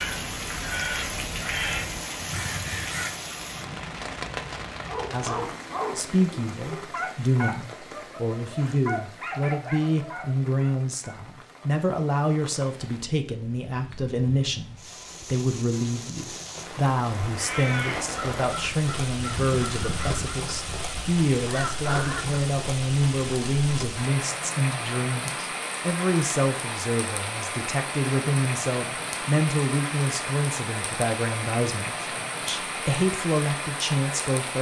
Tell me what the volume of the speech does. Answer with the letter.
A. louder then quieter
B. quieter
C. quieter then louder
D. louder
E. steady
E.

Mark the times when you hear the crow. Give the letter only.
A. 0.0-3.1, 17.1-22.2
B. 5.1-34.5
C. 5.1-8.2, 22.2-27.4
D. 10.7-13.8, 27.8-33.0
A.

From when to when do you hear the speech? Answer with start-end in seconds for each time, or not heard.
5.1-34.5.